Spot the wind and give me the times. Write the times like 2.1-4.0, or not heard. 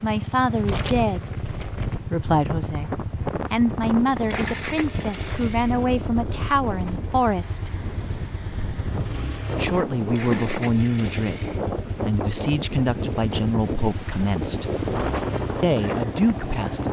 0.0-16.8.